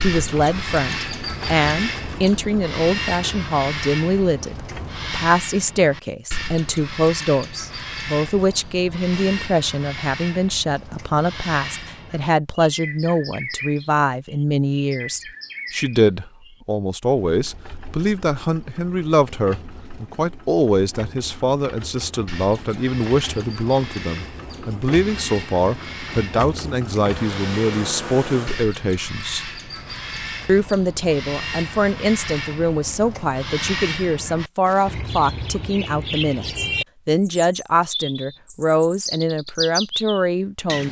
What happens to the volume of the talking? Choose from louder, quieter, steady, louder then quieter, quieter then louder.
steady.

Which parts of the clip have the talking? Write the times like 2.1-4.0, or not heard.
0.0-29.4, 30.4-40.8.